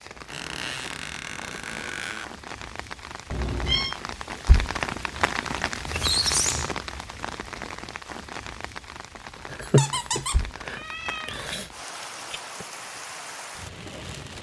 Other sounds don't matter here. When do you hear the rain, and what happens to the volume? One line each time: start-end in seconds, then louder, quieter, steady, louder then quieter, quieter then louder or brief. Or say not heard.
0.0-14.3 louder then quieter.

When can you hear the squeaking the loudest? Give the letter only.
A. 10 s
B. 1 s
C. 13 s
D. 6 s
D.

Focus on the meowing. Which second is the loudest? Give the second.
10 s.